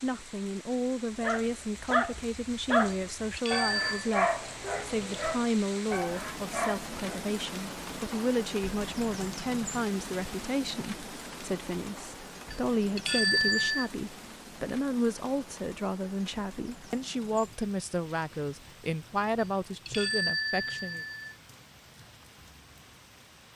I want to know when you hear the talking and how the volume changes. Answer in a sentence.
You can hear the talking from 0.0 to 21.1 s, at a steady volume.